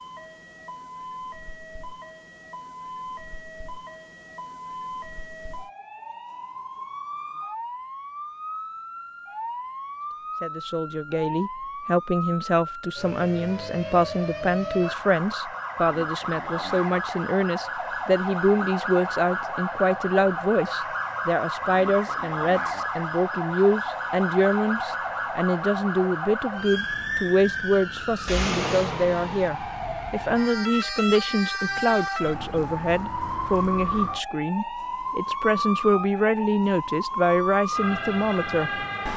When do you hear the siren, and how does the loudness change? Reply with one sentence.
The siren can be heard from 0.0 to 39.1 s, getting louder.